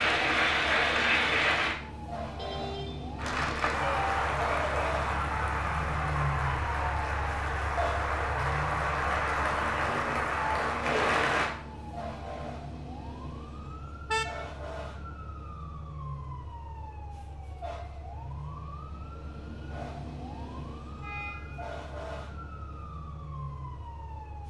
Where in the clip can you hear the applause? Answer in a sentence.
You can hear the applause from 0.0 to 1.8 s and from 3.1 to 11.5 s.